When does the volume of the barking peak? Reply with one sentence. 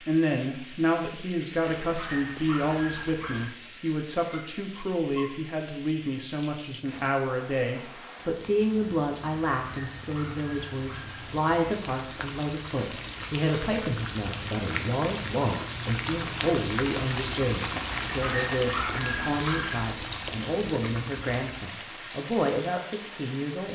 The loudest moment of the barking is at 19 seconds.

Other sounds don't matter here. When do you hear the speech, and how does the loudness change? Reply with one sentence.
You can hear the speech from 0.0 to 23.7 s, at a steady volume.